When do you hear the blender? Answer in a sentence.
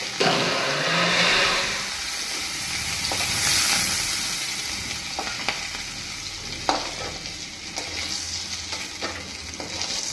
The blender can be heard from 0.0 to 1.9 s.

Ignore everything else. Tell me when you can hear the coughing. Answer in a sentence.
You can't hear the coughing here.